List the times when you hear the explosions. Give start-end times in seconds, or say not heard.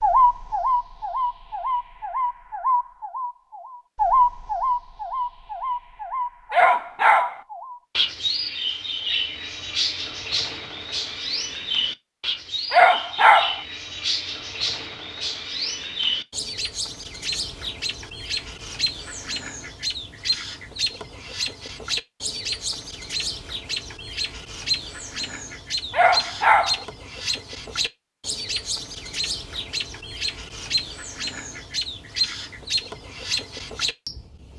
not heard.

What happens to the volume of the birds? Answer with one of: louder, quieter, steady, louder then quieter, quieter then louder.
quieter.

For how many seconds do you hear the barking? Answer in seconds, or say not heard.
3 s.